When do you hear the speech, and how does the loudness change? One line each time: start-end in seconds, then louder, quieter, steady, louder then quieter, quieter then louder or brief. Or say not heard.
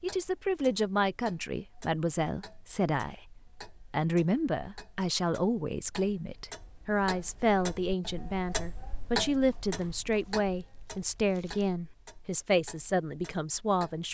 0.0-14.0 steady.